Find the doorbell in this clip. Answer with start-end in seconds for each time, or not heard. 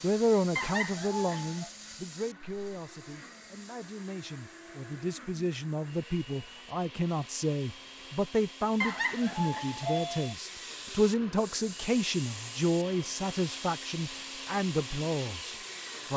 0.6-1.7, 8.8-10.3.